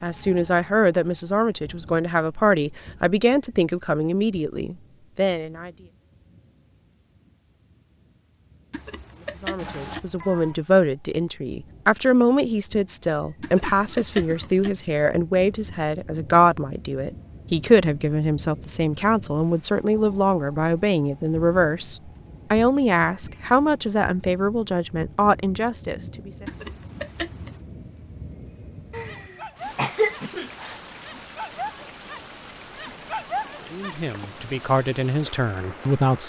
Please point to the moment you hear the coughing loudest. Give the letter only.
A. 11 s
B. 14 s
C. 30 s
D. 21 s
C.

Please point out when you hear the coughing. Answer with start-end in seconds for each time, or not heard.
9.6-10.0, 13.4-14.5, 28.9-30.8.